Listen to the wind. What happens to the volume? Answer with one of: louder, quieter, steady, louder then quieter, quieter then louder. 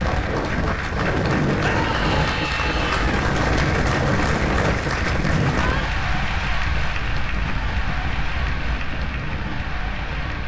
quieter.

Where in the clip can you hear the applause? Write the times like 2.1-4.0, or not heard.
0.0-10.4.